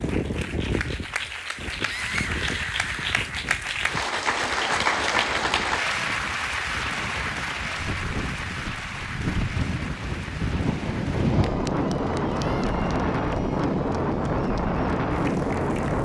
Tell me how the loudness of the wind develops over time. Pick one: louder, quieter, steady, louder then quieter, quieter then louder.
quieter then louder.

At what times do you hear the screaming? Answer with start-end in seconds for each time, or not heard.
1.8-3.2, 12.2-12.8.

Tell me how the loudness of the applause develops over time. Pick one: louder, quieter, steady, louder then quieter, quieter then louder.
louder then quieter.